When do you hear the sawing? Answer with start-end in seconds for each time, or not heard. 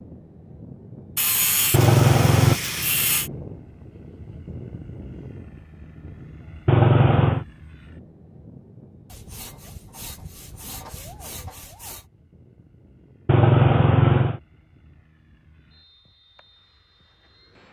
1.1-3.3, 9.1-12.1.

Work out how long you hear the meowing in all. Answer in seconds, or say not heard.
3 s.